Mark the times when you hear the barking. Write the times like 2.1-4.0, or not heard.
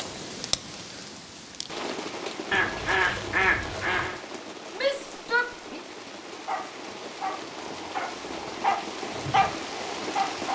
6.2-10.5.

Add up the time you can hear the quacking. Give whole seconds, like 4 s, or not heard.
2 s.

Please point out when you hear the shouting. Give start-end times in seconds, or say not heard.
4.8-5.8.